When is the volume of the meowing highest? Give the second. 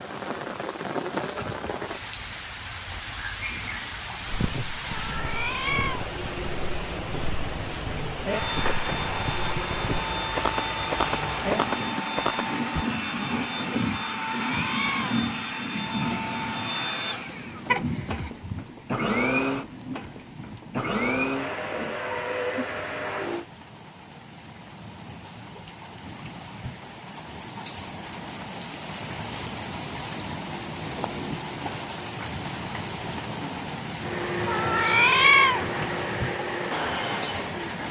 35 s.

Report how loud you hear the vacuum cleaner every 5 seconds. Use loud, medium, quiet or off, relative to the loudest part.
off, loud, loud, loud, loud, off, loud, loud.